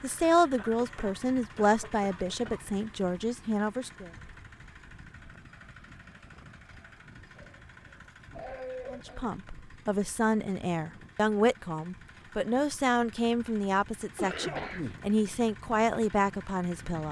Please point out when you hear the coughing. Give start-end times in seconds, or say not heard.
0.6-2.6, 7.3-9.3, 14.2-15.0.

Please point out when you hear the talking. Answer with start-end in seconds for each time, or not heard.
0.0-4.1, 8.9-17.0.